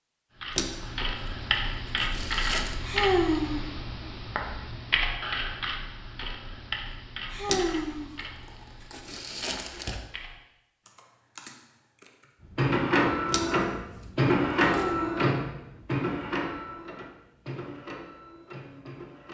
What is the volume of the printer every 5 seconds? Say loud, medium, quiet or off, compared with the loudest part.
off, off, loud, medium.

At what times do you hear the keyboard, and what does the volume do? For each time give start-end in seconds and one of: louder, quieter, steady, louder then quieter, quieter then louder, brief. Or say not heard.
0.4-12.3 quieter.